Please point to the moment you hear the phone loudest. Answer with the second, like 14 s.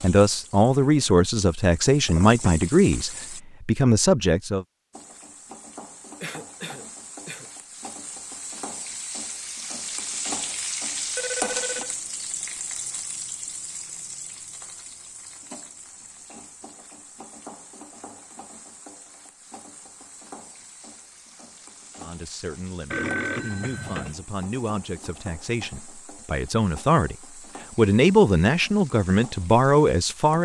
23 s.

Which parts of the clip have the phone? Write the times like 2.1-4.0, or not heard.
2.0-2.7, 11.2-11.9, 22.9-24.1.